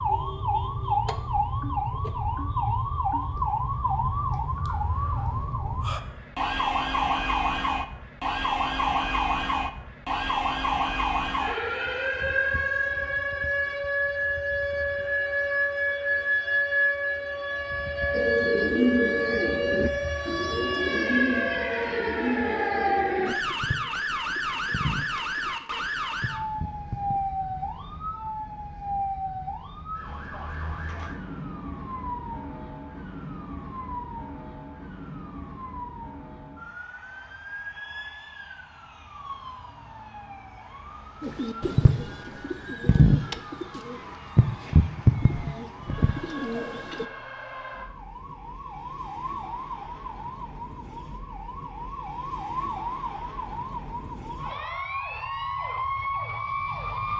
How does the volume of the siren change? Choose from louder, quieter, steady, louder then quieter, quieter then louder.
quieter then louder.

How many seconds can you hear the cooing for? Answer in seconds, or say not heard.
15 s.